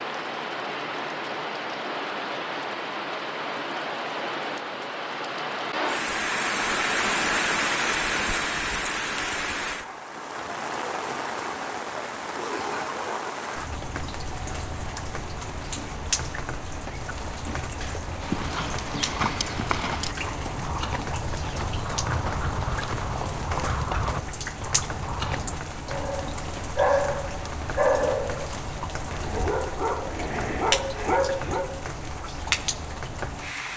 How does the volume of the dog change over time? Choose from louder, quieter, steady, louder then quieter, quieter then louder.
quieter then louder.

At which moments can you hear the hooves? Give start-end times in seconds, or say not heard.
18.2-25.6.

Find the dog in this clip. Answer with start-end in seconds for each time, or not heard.
25.9-31.7.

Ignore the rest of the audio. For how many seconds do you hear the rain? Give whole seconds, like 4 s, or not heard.
34 s.